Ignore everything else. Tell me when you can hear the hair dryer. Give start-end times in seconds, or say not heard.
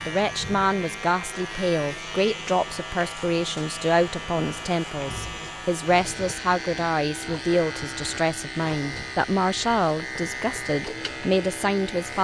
not heard.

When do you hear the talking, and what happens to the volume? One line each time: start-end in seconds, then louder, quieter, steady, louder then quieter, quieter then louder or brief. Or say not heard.
0.1-12.1 steady.